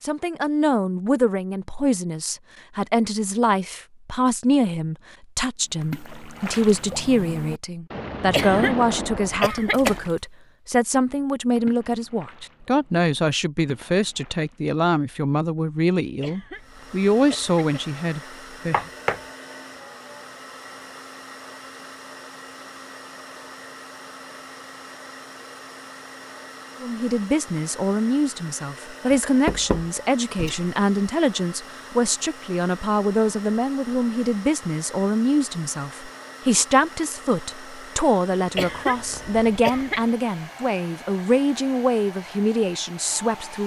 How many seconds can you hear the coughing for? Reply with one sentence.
You can hear the coughing for 5 seconds altogether.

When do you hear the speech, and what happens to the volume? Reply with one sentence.
The speech can be heard from 0.0 to 18.8 s, at a steady volume; and from 26.8 to 43.6 s, at a steady volume.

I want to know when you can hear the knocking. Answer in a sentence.
You can hear the knocking from 18.7 to 19.2 s and from 29.1 to 30.7 s.